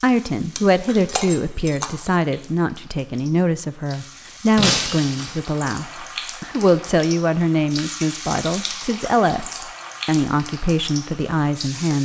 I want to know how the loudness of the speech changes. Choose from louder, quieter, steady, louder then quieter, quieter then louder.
steady.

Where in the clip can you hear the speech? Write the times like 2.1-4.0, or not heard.
0.0-12.0.